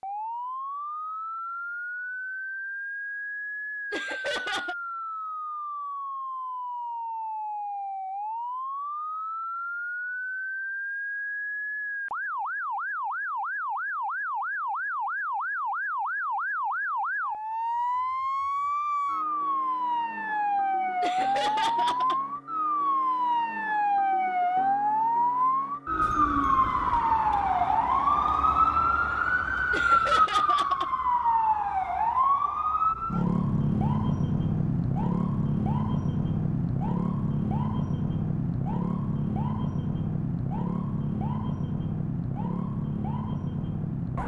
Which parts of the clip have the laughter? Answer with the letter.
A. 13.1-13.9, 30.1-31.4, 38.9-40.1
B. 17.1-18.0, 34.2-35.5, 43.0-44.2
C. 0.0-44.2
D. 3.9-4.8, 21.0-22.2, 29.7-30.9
D.